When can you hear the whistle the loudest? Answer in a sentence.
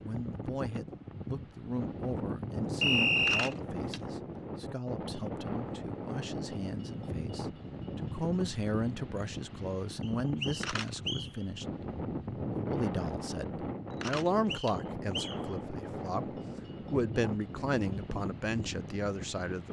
The loudest moment of the whistle is at 3 seconds.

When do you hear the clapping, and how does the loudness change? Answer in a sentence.
You can't hear the clapping here.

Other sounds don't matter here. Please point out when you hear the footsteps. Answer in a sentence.
The footsteps can't be heard in this clip.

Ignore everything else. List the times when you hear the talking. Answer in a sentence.
You can hear the talking from 0.0 to 11.7 s and from 12.5 to 19.6 s.